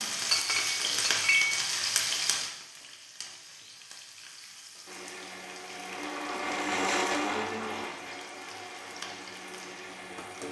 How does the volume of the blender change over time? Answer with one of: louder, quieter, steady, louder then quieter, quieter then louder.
louder then quieter.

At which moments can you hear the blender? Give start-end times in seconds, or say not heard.
4.8-10.4.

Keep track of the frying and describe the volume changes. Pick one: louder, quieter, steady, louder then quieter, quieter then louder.
quieter.